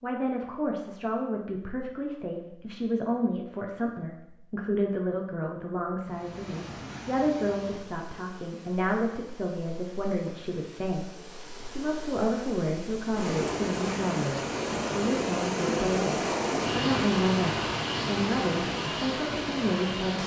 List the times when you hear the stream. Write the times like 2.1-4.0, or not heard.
6.0-20.2.